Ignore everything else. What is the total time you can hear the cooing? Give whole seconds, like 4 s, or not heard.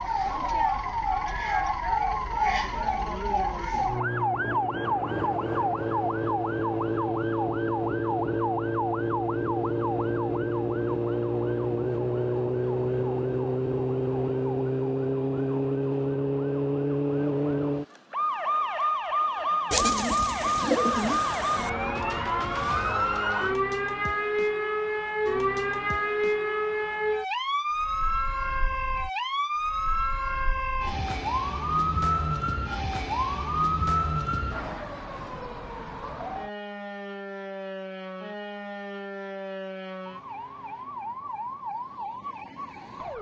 2 s.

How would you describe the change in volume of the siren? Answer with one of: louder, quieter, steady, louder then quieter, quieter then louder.
quieter.